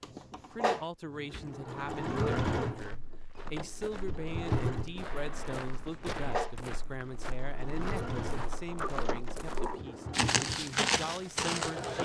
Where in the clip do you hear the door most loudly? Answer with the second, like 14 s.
9 s.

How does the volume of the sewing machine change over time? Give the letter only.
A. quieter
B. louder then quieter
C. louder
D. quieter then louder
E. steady
A.